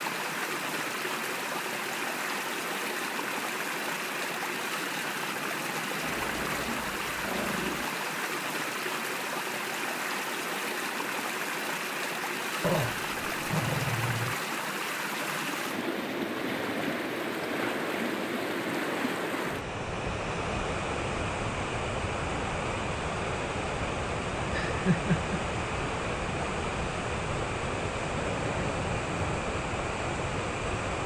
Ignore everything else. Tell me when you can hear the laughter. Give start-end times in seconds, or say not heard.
24.5-25.4.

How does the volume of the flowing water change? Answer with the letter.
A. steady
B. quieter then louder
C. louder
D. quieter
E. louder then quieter
A.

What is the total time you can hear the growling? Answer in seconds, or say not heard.
5 s.